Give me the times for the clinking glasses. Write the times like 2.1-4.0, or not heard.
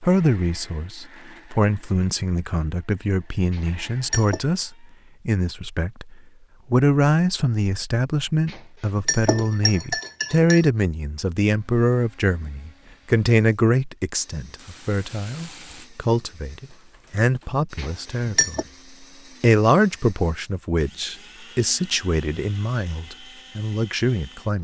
3.5-4.5, 8.4-10.7, 17.8-18.6.